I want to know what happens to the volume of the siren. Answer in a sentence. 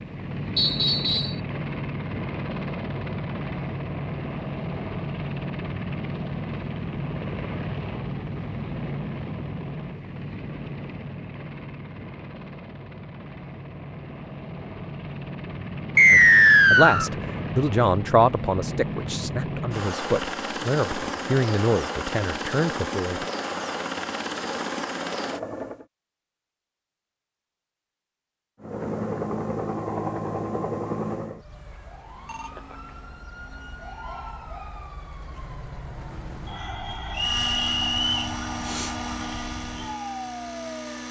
The volume of the siren goes up.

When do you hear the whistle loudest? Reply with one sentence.
The loudest moment of the whistle is at 16 seconds.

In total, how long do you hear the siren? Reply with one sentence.
The siren can be heard for 10 seconds in total.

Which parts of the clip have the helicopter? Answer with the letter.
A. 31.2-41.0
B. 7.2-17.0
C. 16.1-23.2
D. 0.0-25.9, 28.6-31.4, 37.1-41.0
D.